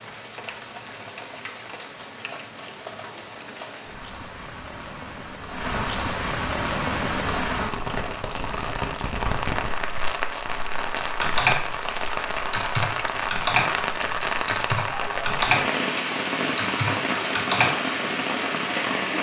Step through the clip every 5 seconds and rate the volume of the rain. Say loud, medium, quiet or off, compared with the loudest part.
quiet, loud, loud, loud.